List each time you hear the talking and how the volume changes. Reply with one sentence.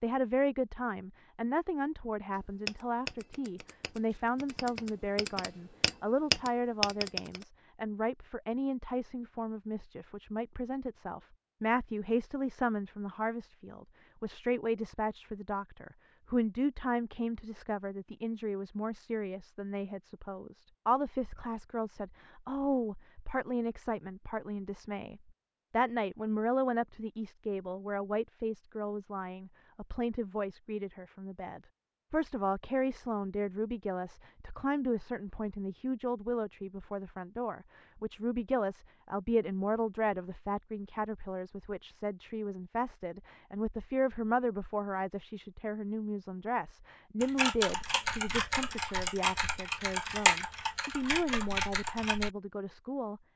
The talking can be heard from 0.0 to 53.2 s, at a steady volume.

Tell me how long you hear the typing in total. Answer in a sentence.
The typing can be heard for 10 seconds in total.